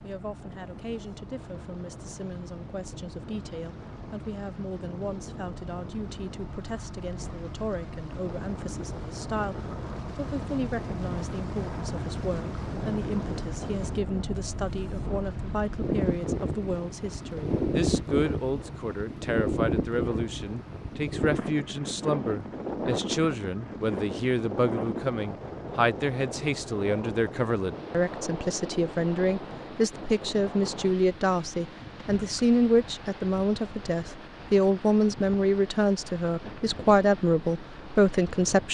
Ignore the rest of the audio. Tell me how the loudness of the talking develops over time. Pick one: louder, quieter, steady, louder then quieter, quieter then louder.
louder.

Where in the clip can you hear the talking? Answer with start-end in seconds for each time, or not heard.
0.0-38.6.